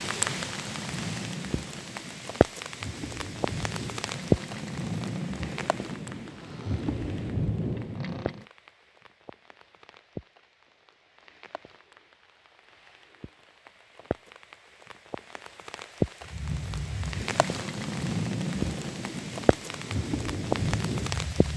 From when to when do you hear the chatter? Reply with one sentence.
You can't hear the chatter here.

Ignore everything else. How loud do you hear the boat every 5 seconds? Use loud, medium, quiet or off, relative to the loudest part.
medium, loud, off, loud, loud.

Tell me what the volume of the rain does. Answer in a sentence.
The volume of the rain goes down, then up.